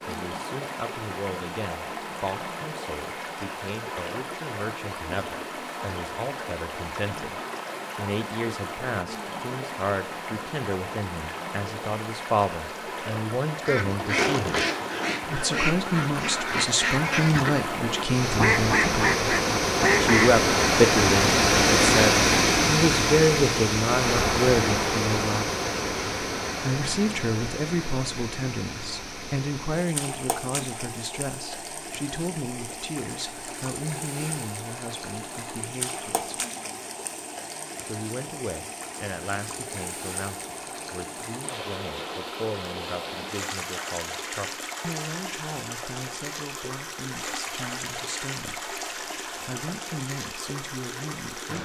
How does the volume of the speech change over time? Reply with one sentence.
The loudness of the speech goes up, then down.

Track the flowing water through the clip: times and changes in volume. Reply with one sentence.
The flowing water can be heard from 0.0 to 51.5 s, getting louder then quieter.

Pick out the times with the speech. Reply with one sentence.
The speech can be heard from 0.0 to 14.7 s, from 15.2 to 19.3 s, from 20.0 to 25.5 s, from 26.6 to 36.4 s and from 37.9 to 51.5 s.